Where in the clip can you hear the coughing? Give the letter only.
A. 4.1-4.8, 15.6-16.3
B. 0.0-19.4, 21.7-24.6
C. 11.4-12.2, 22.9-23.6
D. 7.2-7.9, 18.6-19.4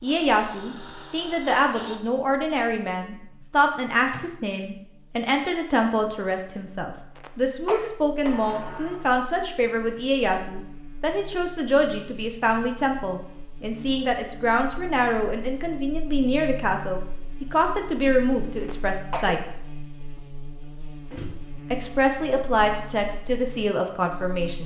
D.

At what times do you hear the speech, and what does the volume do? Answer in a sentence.
The speech can be heard from 0.0 to 19.4 s, at a steady volume; and briefly from 21.7 to 24.6 s.